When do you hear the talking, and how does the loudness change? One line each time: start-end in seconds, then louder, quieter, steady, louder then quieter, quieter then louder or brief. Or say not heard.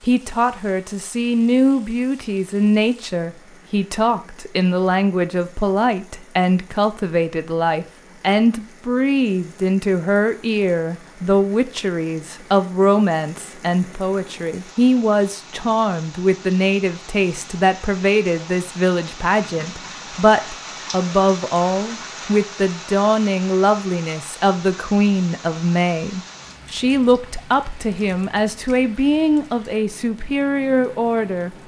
0.0-31.6 steady.